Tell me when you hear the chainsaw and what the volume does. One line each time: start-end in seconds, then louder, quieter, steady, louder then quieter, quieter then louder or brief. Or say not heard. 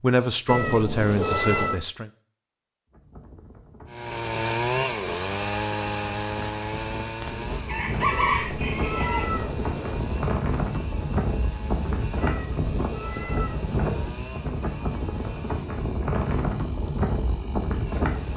3.9-18.3 quieter.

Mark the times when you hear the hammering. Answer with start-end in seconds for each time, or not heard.
not heard.